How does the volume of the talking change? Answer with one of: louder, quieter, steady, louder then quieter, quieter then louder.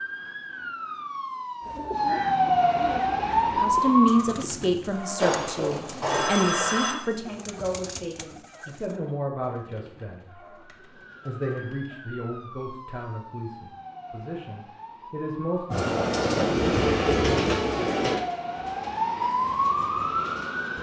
quieter.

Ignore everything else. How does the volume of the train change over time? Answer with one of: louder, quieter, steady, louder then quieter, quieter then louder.
quieter.